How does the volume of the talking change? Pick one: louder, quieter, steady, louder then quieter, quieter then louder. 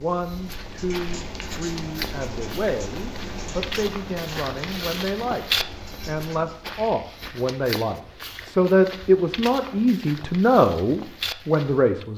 louder.